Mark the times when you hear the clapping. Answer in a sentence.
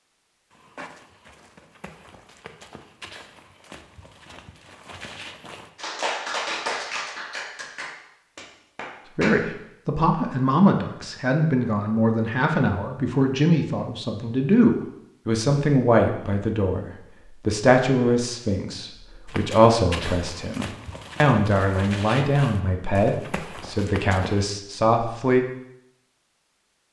You can hear the clapping from 5.8 to 9.4 s.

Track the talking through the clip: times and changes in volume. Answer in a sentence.
You can hear the talking from 9.2 to 25.4 s, at a steady volume.